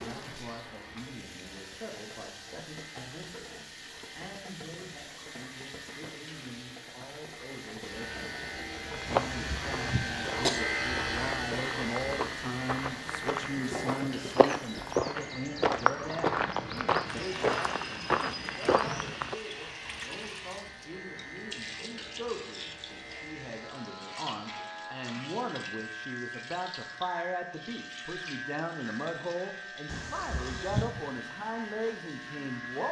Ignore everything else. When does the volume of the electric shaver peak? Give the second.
11 s.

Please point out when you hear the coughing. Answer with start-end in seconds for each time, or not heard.
9.1-10.6, 29.9-30.9.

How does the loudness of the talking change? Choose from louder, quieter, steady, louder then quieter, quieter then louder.
louder.